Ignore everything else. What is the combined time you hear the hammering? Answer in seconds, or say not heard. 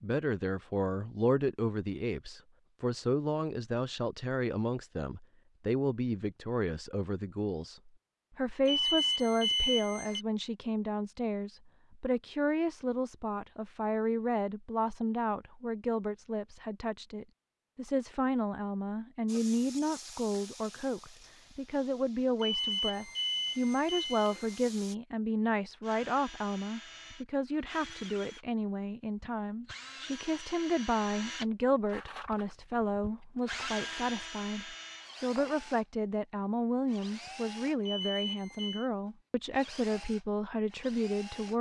not heard.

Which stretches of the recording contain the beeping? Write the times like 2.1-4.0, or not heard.
8.7-10.2, 22.4-24.6, 37.9-38.9.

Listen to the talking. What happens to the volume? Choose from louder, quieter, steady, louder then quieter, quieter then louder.
steady.